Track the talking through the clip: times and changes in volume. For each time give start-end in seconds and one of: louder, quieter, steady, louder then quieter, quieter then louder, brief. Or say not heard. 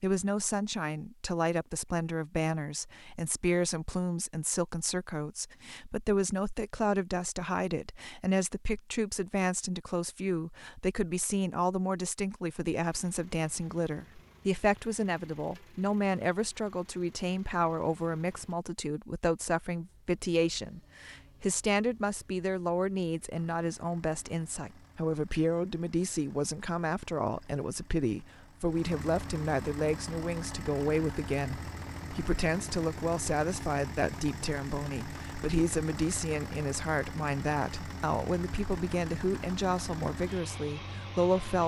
0.0-41.6 steady.